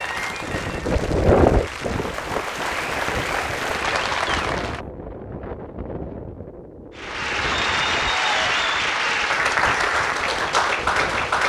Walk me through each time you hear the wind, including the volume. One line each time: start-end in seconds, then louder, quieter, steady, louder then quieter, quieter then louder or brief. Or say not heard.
0.0-11.4 quieter.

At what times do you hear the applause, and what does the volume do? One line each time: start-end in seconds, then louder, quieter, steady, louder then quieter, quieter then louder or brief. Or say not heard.
0.0-4.8 louder
7.0-11.4 steady.